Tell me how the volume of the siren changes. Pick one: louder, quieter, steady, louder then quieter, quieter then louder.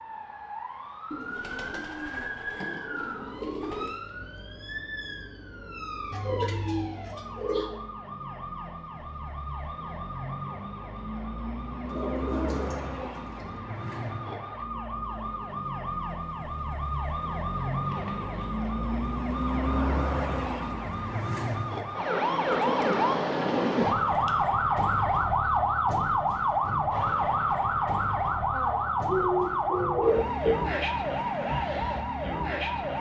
louder.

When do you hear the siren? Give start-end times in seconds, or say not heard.
0.0-32.9.